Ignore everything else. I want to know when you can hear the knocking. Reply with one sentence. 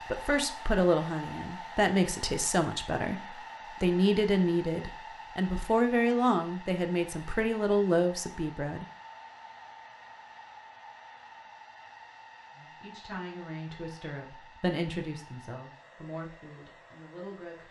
You can't hear the knocking here.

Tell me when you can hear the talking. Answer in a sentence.
The talking can be heard from 0.1 to 8.8 s and from 12.6 to 17.6 s.